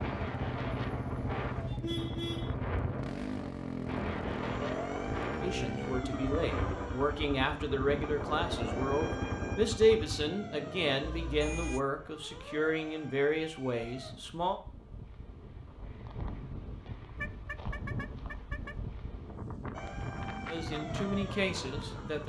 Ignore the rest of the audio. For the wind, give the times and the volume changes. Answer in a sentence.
The wind can be heard from 0.0 to 22.2 s, getting quieter then louder.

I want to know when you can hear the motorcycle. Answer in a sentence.
You can hear the motorcycle from 0.0 to 10.2 s.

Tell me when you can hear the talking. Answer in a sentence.
You can hear the talking from 5.4 to 14.6 s and from 20.4 to 22.2 s.